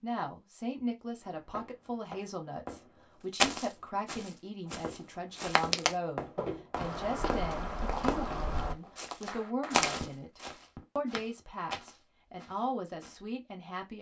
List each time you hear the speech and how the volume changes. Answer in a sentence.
The speech can be heard from 0.0 to 13.9 s, at a steady volume.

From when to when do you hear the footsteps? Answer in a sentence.
The footsteps can be heard from 3.4 to 13.2 s.